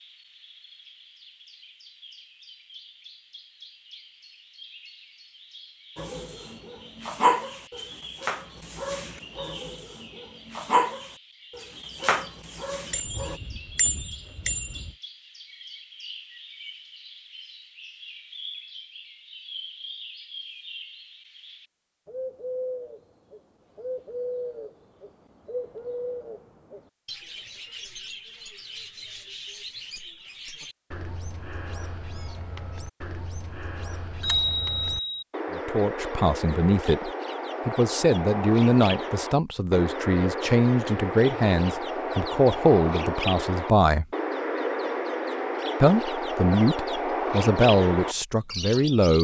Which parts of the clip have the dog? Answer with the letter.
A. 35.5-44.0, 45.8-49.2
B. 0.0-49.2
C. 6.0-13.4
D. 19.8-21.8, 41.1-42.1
C.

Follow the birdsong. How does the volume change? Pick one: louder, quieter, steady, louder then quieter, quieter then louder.
louder.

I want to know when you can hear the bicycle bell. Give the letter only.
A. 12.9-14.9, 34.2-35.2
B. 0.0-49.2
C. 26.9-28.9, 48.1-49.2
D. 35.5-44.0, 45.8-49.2
A.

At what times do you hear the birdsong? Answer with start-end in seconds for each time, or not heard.
0.0-49.2.